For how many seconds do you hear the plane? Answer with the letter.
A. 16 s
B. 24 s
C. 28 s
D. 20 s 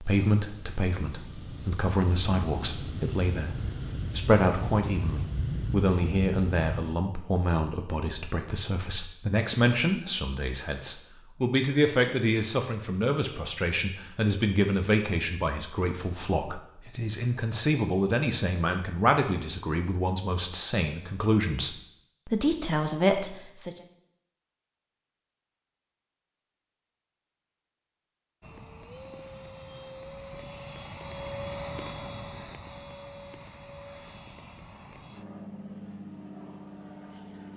A.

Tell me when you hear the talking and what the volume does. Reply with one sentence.
You can hear the talking from 0.0 to 23.8 s, at a steady volume.